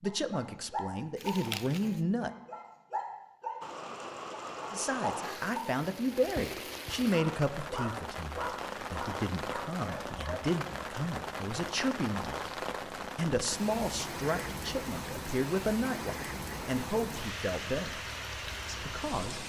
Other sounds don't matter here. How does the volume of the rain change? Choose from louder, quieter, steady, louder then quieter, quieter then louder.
steady.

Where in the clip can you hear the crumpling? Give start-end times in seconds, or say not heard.
1.1-2.0.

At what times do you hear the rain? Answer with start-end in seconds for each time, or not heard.
3.6-19.4.